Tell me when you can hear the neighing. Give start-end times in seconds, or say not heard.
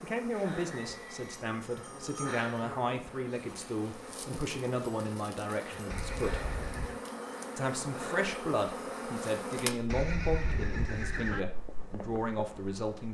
0.7-1.4, 5.8-7.0, 9.8-11.4.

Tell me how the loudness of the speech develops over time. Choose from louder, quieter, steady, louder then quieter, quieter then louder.
steady.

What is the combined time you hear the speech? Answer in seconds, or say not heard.
12 s.